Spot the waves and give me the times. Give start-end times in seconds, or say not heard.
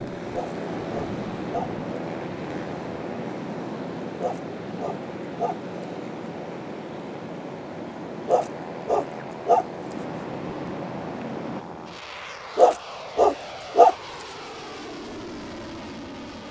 0.2-11.7.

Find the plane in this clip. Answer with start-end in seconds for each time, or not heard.
0.0-16.4.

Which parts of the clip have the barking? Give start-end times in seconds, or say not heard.
0.3-1.7, 4.2-5.5, 8.2-9.7, 12.6-13.9.